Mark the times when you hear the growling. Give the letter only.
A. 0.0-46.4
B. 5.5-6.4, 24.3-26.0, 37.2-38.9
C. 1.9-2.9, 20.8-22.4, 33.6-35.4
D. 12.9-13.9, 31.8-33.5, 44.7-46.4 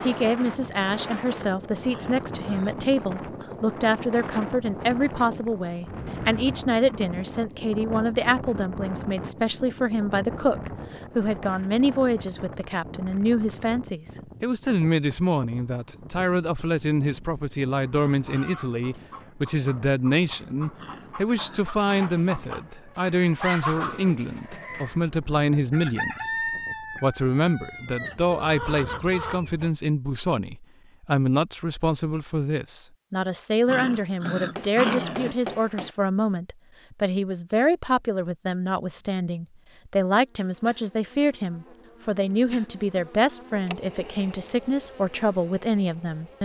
C.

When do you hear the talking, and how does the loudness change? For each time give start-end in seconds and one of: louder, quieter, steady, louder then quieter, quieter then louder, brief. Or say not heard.
0.0-46.4 steady.